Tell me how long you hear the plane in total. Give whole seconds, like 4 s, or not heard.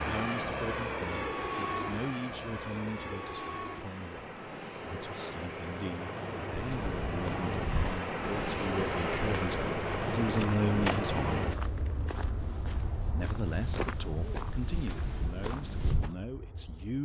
17 s.